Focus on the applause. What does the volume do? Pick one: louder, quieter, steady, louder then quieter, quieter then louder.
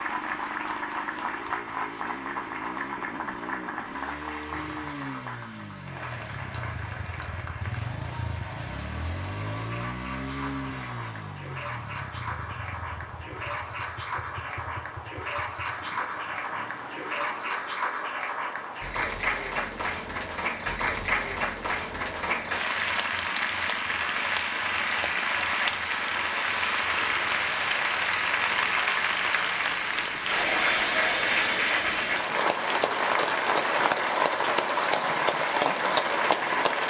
louder.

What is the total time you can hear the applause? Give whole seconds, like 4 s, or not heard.
37 s.